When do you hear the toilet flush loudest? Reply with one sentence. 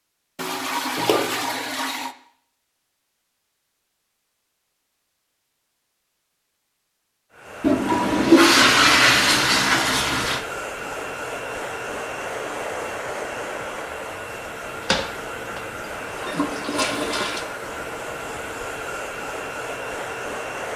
The volume of the toilet flush peaks at 9 seconds.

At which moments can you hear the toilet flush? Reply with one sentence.
You can hear the toilet flush from 0.3 to 2.1 s, from 7.6 to 10.4 s and from 14.8 to 17.4 s.